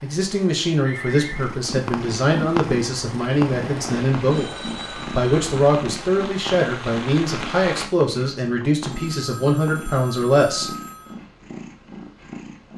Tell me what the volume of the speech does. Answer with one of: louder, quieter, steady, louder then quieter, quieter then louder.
steady.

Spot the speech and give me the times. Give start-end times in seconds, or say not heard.
0.0-10.8.